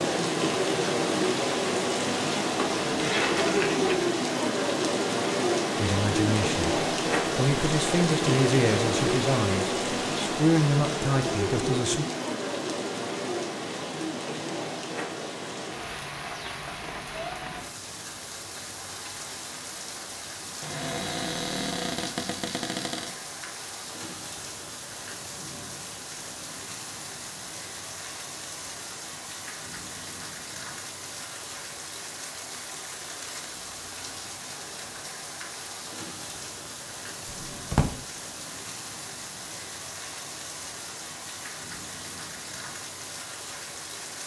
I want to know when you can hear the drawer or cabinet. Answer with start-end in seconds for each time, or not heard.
2.5-4.0, 20.6-23.1, 37.5-38.0.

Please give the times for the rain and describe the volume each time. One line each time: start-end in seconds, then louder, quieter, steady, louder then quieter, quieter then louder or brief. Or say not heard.
0.0-44.2 quieter.